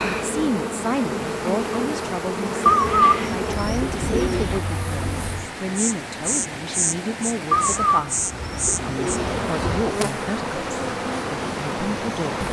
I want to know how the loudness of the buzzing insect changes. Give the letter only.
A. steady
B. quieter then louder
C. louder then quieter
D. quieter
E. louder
A.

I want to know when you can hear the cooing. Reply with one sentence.
The cooing can be heard from 2.6 to 4.7 s and from 7.5 to 9.9 s.